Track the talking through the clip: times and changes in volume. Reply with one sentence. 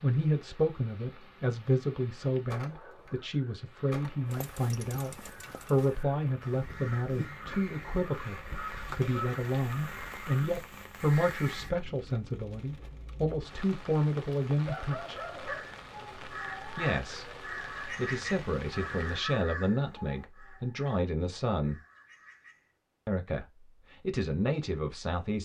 You can hear the talking from 0.0 to 15.2 s, at a steady volume; from 16.8 to 21.8 s, getting louder; and briefly from 23.1 to 25.4 s.